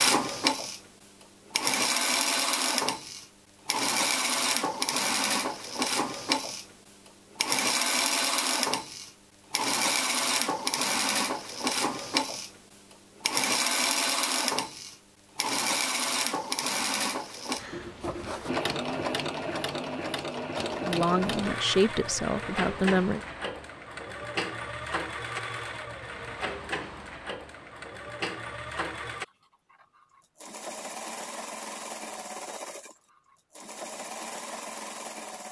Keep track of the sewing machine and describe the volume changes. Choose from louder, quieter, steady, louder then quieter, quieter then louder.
quieter.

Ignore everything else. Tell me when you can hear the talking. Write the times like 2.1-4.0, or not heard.
20.8-23.2.